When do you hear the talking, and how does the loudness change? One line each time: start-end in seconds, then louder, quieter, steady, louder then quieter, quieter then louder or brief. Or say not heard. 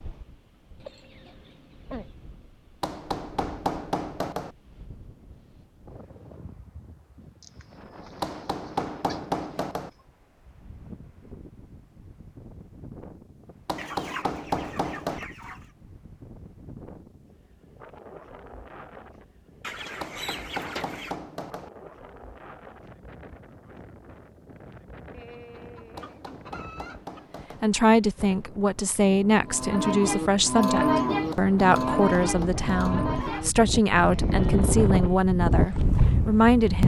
27.6-36.8 steady.